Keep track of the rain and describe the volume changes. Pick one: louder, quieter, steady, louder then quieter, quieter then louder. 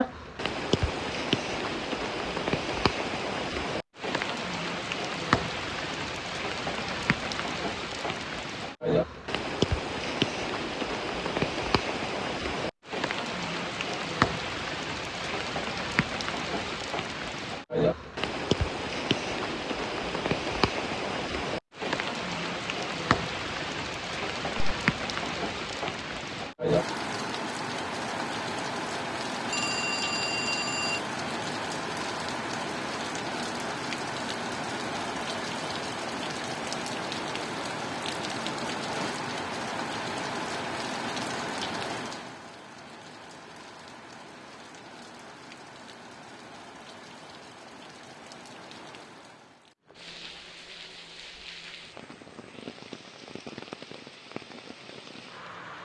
quieter.